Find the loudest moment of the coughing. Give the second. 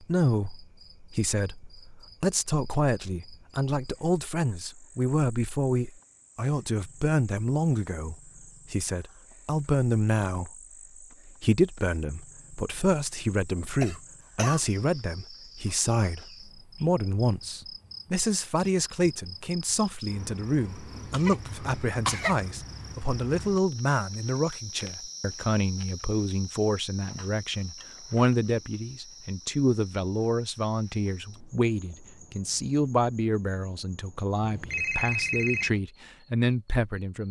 22 s.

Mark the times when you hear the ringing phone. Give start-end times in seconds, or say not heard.
34.4-35.8.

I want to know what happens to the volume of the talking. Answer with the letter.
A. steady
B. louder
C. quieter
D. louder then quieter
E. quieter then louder
A.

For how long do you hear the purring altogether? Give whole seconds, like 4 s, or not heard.
not heard.